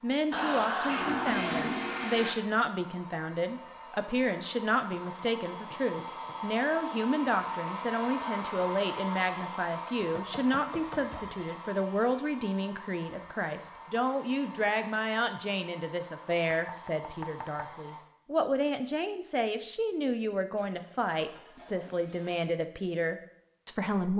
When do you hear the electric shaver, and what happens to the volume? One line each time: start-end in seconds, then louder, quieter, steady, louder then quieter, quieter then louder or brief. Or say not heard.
not heard.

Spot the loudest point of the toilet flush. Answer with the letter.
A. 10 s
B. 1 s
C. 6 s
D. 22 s
B.